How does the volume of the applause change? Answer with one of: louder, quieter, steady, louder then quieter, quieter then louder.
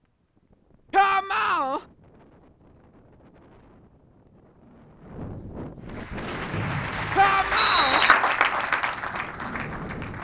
louder then quieter.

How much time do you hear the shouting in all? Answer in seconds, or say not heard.
2 s.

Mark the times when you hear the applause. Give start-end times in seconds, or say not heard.
5.8-10.1.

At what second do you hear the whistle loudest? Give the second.
8 s.